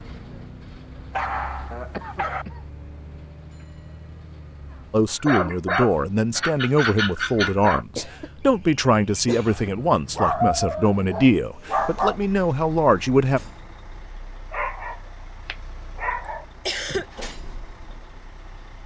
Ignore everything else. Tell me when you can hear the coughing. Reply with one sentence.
The coughing can be heard from 1.7 to 2.6 s, from 8.0 to 9.7 s and from 16.6 to 17.1 s.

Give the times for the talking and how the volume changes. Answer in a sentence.
You can hear the talking from 4.9 to 13.4 s, at a steady volume.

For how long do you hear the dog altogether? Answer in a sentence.
You can hear the dog for 9 seconds altogether.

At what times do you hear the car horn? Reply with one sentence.
The car horn can't be heard in this clip.